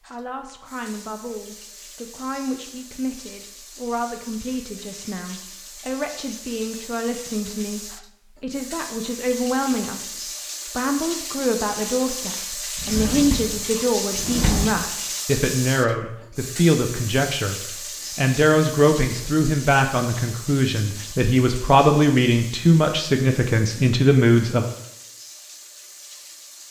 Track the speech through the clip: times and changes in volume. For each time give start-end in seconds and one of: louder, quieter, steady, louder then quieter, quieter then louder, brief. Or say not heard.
0.1-24.6 louder.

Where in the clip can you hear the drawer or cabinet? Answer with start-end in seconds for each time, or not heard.
12.8-14.7.